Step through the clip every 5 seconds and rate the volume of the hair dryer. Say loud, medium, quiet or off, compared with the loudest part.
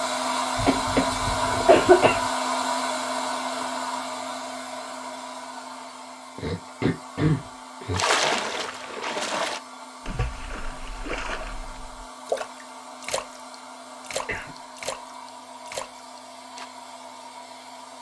loud, quiet, quiet, quiet.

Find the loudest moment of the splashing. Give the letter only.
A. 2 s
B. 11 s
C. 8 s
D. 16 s
C.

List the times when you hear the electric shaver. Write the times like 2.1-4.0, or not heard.
not heard.